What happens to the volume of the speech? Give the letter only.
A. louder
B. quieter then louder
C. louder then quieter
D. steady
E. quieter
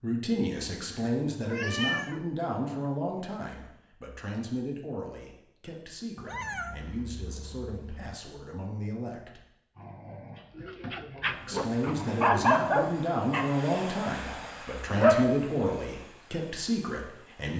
B.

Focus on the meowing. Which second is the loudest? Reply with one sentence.
The loudest moment of the meowing is at 2 seconds.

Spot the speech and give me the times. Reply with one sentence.
You can hear the speech from 0.0 to 9.4 s and from 11.4 to 17.5 s.